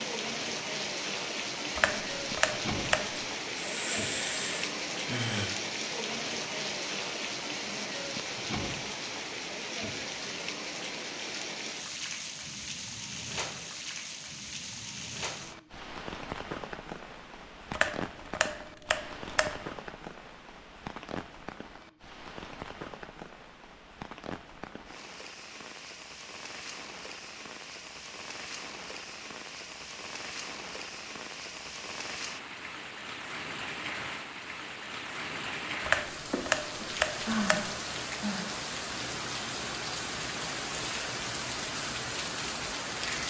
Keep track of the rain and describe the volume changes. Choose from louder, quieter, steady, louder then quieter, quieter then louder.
quieter then louder.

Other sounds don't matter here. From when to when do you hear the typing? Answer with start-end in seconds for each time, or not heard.
1.8-3.2, 17.7-19.6, 35.8-37.8.